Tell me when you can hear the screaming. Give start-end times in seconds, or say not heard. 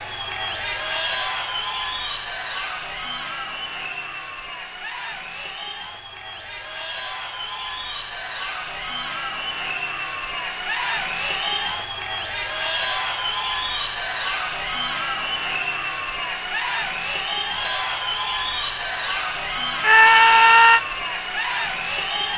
19.8-20.8.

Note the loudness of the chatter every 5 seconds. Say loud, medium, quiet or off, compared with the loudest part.
loud, medium, loud, loud, loud.